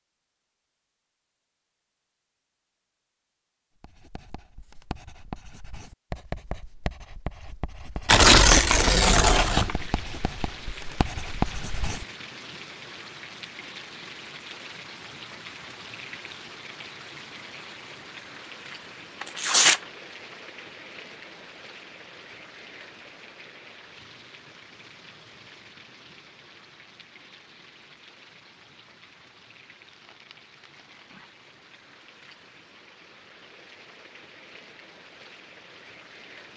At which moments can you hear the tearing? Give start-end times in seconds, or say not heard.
8.1-9.8, 19.2-19.8, 29.9-31.2.